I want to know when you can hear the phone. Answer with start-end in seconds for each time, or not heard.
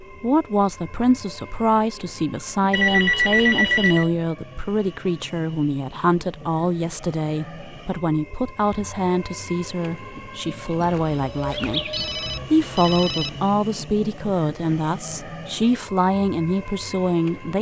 2.7-4.1, 10.8-13.3.